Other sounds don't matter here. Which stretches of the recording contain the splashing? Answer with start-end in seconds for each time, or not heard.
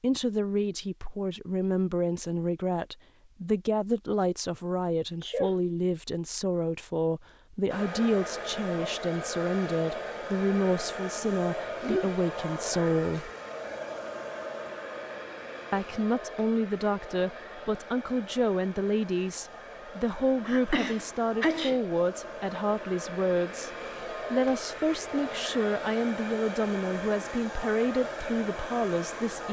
not heard.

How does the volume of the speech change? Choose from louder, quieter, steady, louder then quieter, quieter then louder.
steady.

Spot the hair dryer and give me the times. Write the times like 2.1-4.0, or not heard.
7.7-29.4.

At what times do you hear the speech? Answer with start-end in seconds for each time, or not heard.
0.0-13.3, 15.7-23.7, 24.3-29.4.